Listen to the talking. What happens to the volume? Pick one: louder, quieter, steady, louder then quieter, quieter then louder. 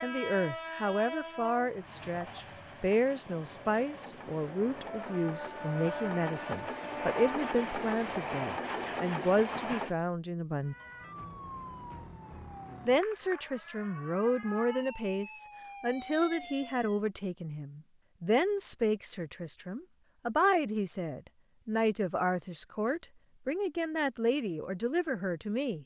steady.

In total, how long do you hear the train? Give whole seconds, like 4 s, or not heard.
10 s.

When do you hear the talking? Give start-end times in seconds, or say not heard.
0.0-10.8, 12.8-25.8.